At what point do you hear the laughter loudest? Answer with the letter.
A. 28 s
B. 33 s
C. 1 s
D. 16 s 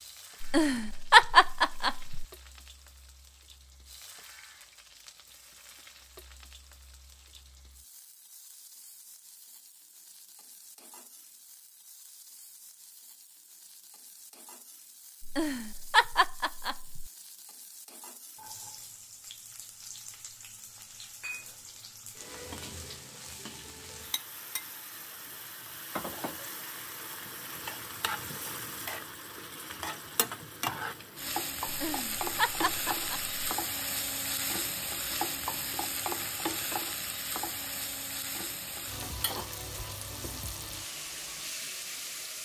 C.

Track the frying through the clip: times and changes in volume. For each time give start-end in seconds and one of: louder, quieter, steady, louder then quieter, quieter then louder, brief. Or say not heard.
0.0-42.4 louder.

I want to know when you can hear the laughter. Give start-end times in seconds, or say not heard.
0.4-2.2, 15.2-17.1, 31.6-33.4.